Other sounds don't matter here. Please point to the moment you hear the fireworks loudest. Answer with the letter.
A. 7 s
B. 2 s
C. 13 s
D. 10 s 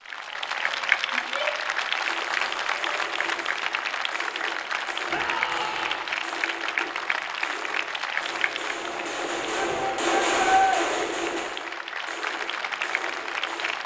D.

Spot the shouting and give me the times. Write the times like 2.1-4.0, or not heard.
1.1-1.7, 5.1-6.0, 9.5-10.8.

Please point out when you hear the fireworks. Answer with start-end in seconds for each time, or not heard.
2.0-13.8.